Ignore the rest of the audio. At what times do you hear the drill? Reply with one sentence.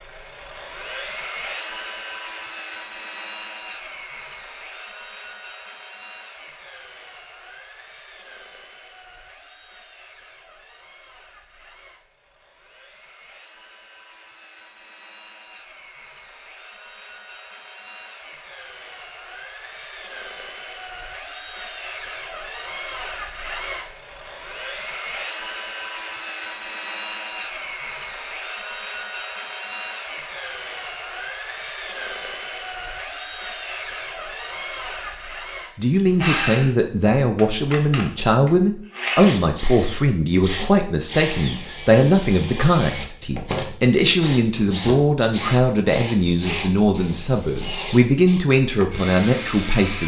You can hear the drill from 0.0 to 50.0 s.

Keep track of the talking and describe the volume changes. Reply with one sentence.
The loudness of the talking stays about the same.